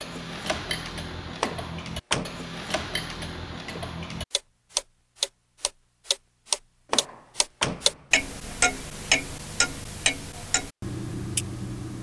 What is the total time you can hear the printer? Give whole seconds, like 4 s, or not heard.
not heard.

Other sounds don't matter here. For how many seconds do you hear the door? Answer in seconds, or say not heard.
2 s.